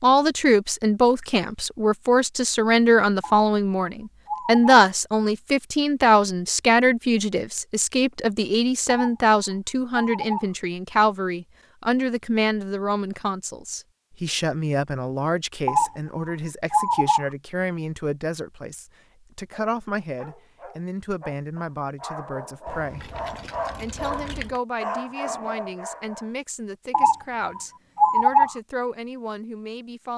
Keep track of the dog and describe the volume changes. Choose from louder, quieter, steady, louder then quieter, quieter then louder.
louder.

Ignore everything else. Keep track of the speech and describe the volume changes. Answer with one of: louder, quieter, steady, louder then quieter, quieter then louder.
quieter.